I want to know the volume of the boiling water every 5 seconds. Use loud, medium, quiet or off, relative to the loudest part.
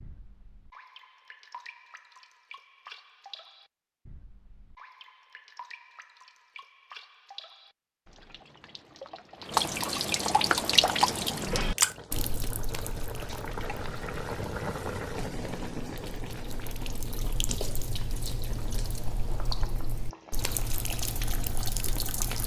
off, off, loud, loud, medium.